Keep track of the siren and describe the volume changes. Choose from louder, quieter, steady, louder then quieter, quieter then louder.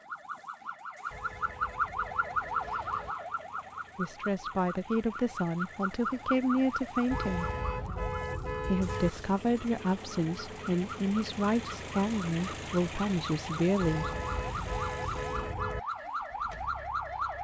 quieter then louder.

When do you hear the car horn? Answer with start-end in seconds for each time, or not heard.
1.1-3.1, 7.1-9.1, 13.8-15.8.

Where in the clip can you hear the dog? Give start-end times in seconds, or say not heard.
not heard.